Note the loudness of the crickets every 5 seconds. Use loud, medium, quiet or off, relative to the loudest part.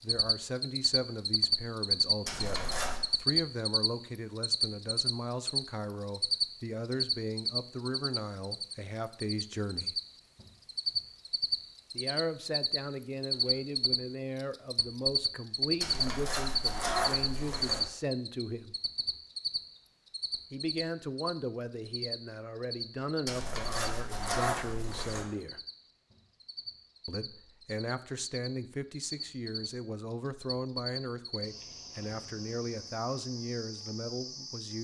loud, loud, loud, loud, medium, quiet, quiet.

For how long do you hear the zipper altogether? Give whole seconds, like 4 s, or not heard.
5 s.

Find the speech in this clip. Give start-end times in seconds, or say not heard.
0.0-10.0, 11.9-18.8, 20.5-25.6, 27.1-34.7.